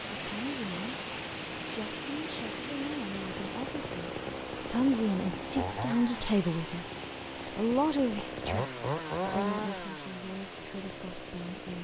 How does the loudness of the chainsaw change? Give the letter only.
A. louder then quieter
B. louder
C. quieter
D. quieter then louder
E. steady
B.